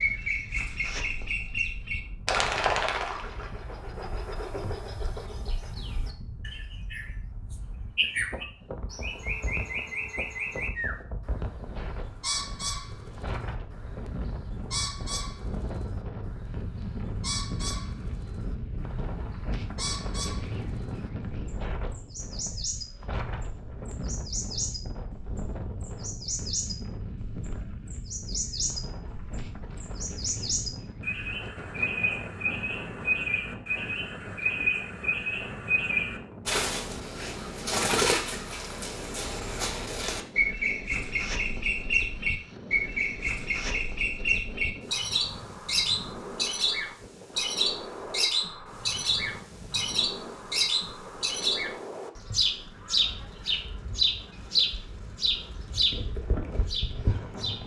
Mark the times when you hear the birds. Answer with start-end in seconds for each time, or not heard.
0.0-57.6.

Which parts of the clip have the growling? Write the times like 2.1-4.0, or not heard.
not heard.